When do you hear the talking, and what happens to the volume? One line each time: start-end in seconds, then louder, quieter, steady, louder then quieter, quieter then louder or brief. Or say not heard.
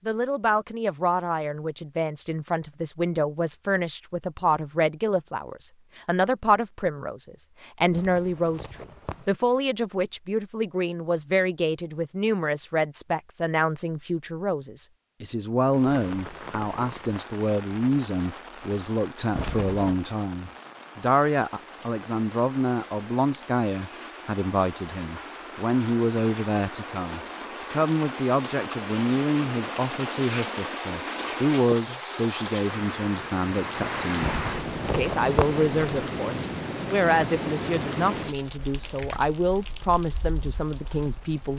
0.1-41.5 steady.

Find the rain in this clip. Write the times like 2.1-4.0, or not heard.
15.7-41.5.